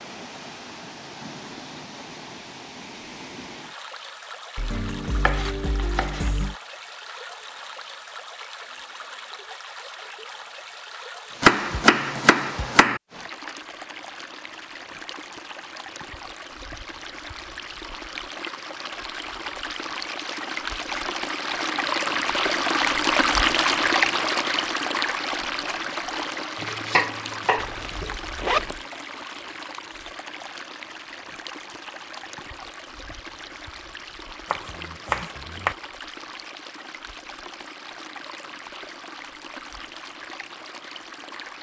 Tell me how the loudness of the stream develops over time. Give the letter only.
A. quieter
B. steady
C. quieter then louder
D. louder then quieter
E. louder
D.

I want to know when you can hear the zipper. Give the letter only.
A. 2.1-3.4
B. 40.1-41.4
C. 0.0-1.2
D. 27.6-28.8
D.